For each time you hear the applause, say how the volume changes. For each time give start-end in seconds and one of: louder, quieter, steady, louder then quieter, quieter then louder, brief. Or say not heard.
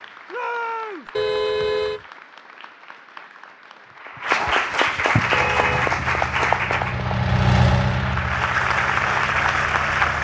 0.0-10.1 louder.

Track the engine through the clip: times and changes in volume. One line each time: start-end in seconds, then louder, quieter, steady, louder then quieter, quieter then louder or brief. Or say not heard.
5.2-10.1 louder then quieter.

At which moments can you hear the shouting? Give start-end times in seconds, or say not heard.
0.3-1.1.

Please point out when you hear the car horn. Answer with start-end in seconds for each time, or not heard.
1.1-2.0, 5.2-6.2.